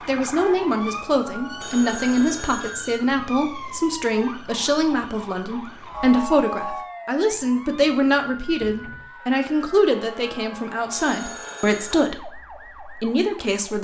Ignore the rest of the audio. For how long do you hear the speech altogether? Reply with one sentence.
The speech can be heard for 14 seconds in total.